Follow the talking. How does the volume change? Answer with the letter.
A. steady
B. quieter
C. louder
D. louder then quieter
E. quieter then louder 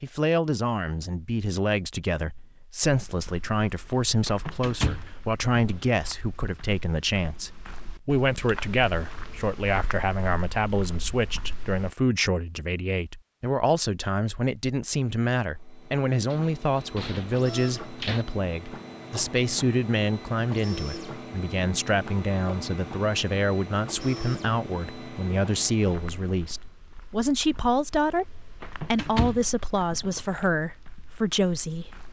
A.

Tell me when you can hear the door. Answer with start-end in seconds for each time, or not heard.
4.2-6.1, 16.3-18.2, 28.6-30.4.